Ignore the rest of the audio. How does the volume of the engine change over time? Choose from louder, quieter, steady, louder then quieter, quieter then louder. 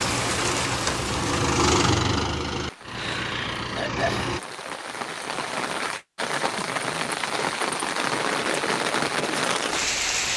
louder then quieter.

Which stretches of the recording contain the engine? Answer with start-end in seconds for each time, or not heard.
0.0-4.4.